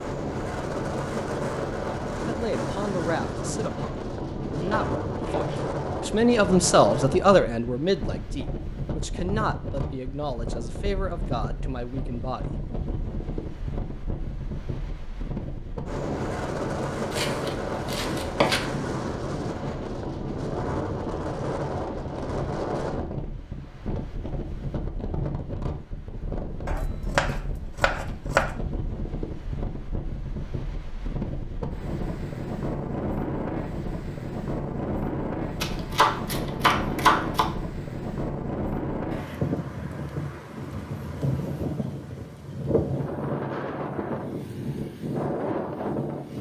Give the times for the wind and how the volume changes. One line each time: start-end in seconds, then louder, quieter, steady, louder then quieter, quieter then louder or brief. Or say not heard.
0.0-46.3 steady.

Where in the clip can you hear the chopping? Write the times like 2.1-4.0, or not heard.
4.6-5.6, 17.1-18.9, 26.6-28.5, 35.6-37.5.